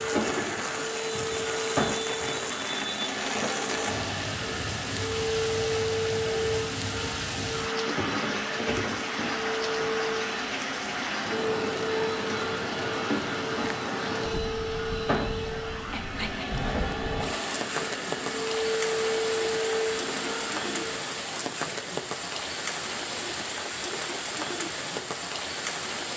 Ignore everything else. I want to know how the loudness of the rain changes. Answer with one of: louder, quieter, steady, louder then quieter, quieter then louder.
steady.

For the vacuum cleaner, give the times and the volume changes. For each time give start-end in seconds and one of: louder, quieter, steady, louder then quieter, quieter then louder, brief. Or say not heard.
0.0-21.1 steady.